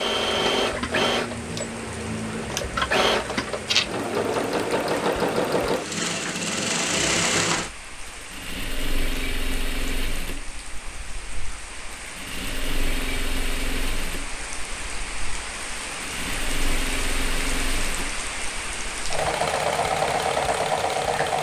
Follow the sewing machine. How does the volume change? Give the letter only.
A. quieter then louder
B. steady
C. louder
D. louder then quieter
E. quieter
A.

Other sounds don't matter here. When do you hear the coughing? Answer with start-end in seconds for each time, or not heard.
not heard.